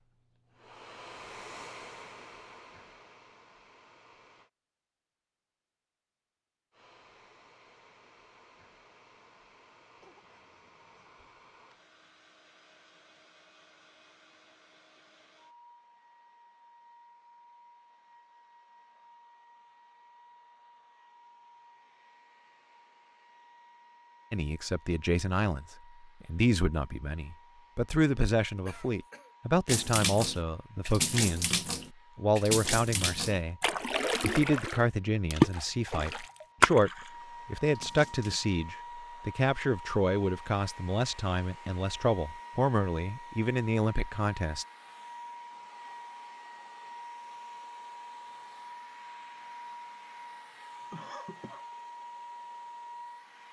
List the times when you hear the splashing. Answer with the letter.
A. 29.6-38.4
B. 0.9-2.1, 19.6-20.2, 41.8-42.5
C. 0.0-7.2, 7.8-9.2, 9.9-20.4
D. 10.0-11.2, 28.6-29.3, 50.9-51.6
A.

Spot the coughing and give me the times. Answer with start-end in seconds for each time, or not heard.
10.0-11.2, 28.6-29.3, 50.9-51.6.